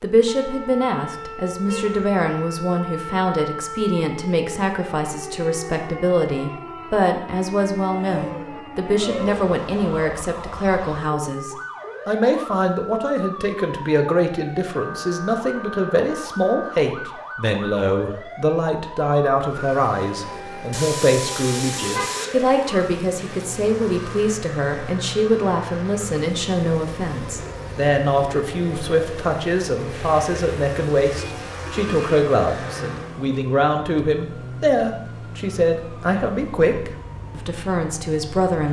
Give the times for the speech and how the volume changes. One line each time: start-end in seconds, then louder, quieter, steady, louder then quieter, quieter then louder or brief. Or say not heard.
0.0-38.6 steady.